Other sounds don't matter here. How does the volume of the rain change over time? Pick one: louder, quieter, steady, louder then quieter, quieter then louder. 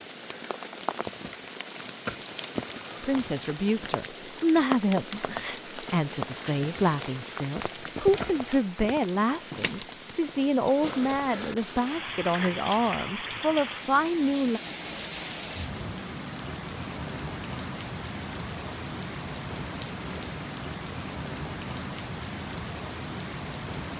steady.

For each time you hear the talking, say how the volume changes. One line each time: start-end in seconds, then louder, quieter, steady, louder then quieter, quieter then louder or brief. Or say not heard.
3.0-14.6 steady.